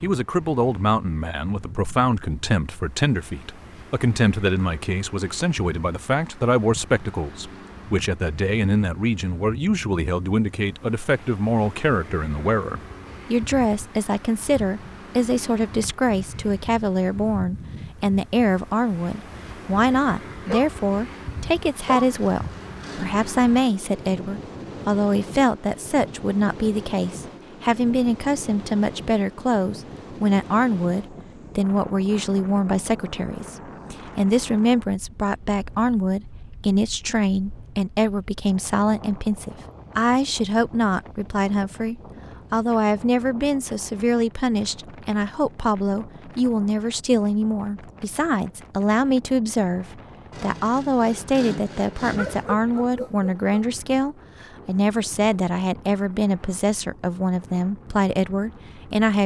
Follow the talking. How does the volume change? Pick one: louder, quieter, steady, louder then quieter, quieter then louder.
steady.